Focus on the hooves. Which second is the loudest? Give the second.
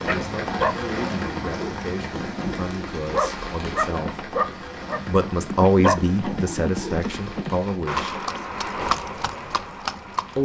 9 s.